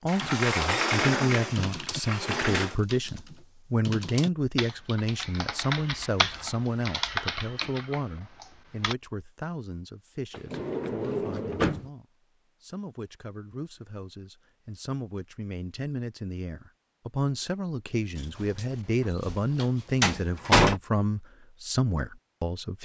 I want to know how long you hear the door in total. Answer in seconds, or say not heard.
7 s.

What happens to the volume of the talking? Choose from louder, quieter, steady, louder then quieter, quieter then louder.
quieter then louder.